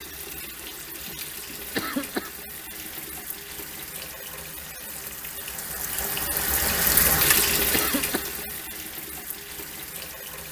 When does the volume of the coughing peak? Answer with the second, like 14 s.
2 s.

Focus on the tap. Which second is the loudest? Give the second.
7 s.